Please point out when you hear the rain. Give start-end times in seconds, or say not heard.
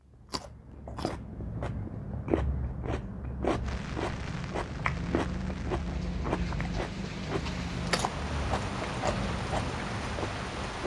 3.6-10.8.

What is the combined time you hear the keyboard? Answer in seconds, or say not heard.
not heard.